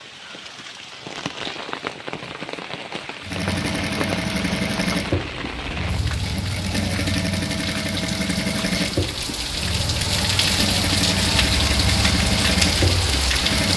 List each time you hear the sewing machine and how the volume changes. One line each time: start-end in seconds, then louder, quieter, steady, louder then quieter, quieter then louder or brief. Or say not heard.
3.2-13.7 steady.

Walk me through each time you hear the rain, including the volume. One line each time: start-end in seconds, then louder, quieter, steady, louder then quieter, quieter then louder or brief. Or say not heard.
0.0-13.7 louder.